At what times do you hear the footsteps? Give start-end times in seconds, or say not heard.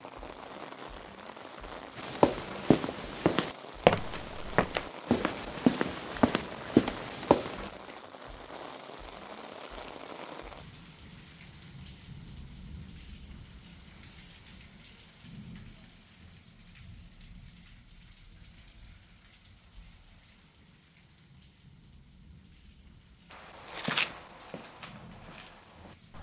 1.9-7.7, 23.3-26.1.